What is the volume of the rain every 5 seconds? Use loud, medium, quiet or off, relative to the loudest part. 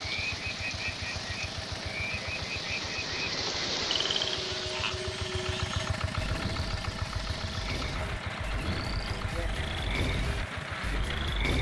loud, medium, loud.